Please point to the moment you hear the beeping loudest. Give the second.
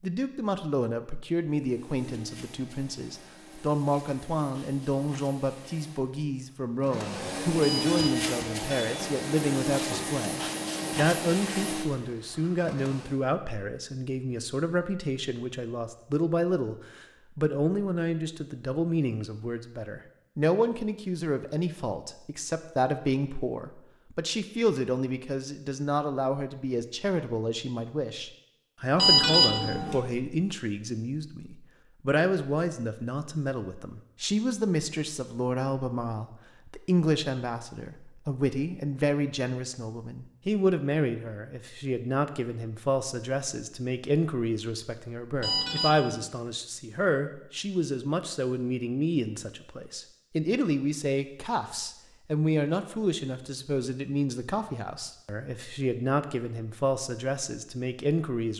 29 s.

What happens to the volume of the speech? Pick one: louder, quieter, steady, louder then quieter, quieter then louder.
steady.